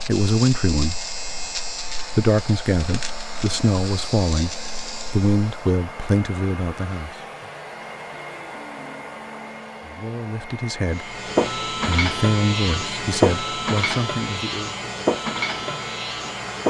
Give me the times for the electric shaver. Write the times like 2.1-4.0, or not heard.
0.0-5.8, 10.9-16.6.